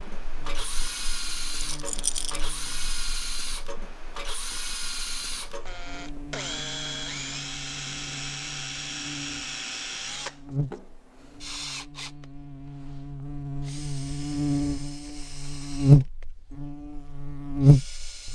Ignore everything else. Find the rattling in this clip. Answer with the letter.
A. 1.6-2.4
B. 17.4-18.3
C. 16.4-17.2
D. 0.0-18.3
A.